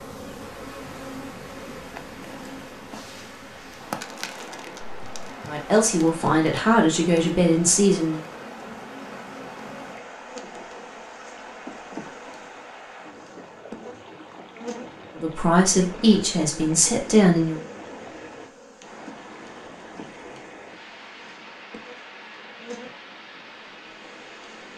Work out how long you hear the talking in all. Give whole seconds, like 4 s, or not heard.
5 s.